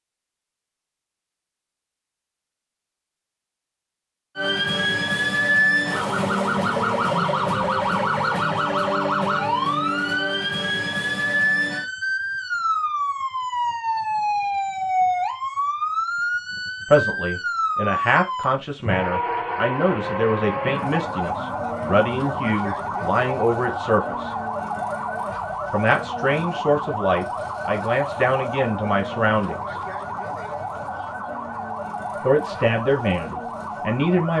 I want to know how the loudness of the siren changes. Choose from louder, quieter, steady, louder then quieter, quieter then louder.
quieter.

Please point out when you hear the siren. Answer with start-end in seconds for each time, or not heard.
4.3-34.3.